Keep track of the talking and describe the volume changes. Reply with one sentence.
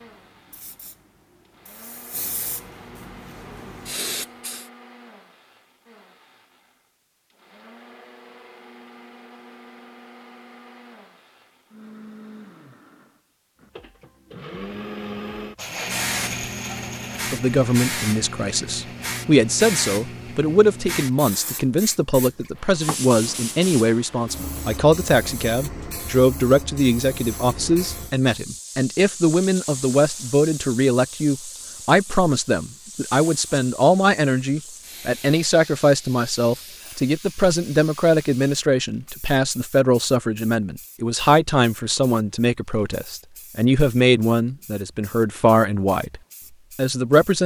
The volume of the talking stays about the same.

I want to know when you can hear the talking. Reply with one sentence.
The talking can be heard from 17.3 to 47.4 s.